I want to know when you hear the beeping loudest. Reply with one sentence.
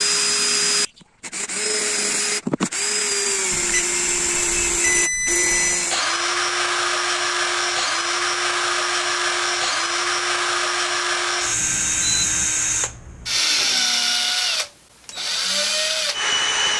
The loudest moment of the beeping is at 5 seconds.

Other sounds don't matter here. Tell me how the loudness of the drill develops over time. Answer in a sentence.
The volume of the drill stays about the same.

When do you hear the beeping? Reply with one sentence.
The beeping can be heard from 3.5 to 5.8 s and from 11.6 to 12.5 s.